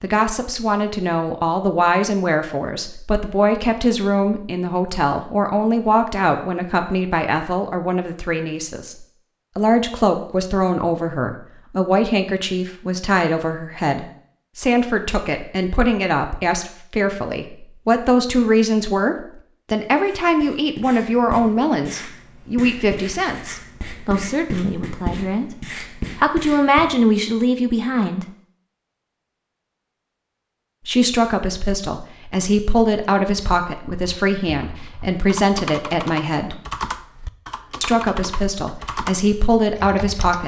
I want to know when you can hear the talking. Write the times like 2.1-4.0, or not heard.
0.0-28.2, 30.9-36.6, 37.8-40.4.